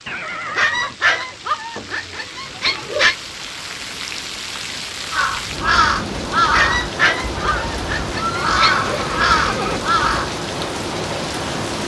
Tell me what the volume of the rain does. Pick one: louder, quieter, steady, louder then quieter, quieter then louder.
louder.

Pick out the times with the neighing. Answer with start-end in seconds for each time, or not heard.
0.1-1.0, 8.2-9.8.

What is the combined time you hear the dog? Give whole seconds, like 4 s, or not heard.
5 s.